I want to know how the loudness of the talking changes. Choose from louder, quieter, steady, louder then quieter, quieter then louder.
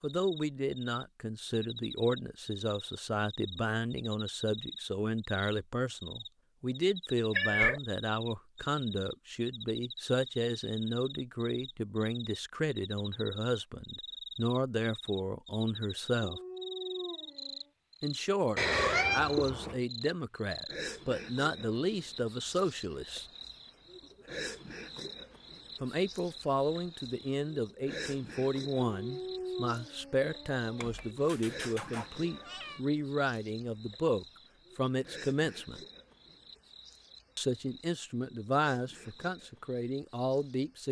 steady.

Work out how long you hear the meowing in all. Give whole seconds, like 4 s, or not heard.
4 s.